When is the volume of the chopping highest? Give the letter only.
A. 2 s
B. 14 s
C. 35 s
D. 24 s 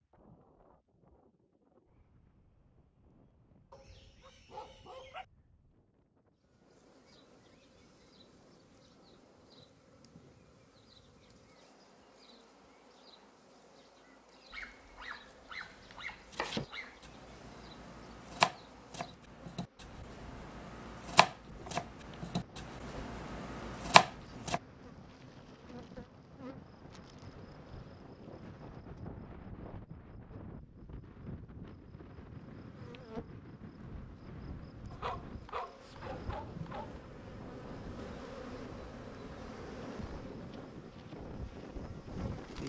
D.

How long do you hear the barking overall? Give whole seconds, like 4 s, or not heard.
6 s.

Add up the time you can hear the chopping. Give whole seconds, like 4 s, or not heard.
9 s.